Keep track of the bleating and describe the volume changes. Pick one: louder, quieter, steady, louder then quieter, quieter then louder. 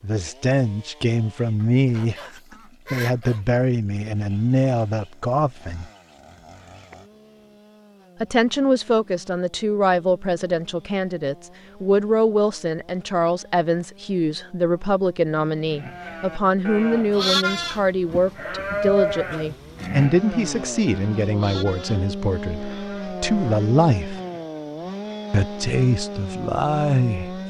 quieter.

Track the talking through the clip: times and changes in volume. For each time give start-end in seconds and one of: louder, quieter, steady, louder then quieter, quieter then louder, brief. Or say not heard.
0.0-5.8 steady
8.2-24.2 steady
25.3-27.4 brief.